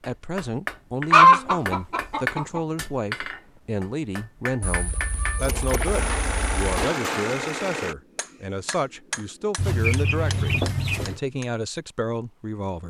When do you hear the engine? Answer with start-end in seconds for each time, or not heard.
5.3-8.0.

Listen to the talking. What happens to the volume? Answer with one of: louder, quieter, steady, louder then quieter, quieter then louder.
steady.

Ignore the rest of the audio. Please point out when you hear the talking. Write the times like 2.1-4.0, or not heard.
0.1-12.8.